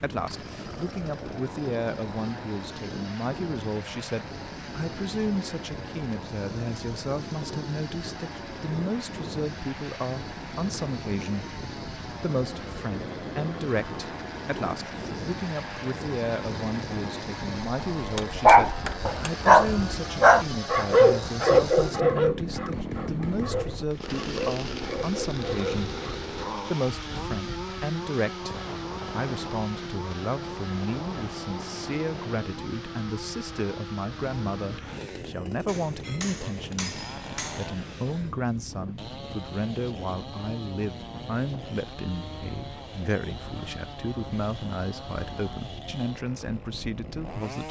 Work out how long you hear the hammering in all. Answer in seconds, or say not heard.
4 s.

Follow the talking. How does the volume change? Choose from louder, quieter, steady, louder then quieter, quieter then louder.
steady.